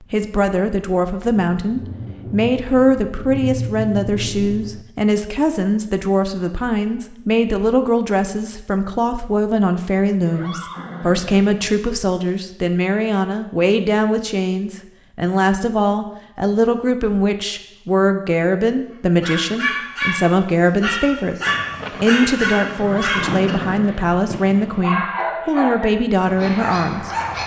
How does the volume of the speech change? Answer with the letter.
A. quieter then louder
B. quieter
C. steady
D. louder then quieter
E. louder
C.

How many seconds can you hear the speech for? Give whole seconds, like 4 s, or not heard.
27 s.